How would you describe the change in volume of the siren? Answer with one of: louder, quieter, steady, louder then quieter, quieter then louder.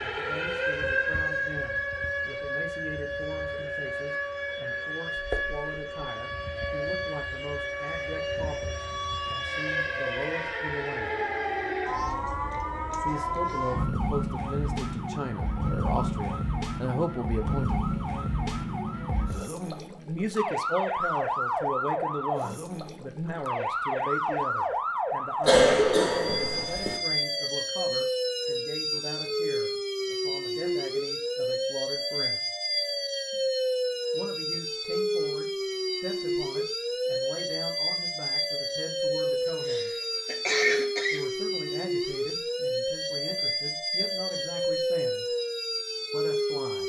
steady.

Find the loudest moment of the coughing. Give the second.
26 s.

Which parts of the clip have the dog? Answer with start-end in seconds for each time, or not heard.
not heard.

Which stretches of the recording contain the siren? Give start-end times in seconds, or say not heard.
0.0-46.8.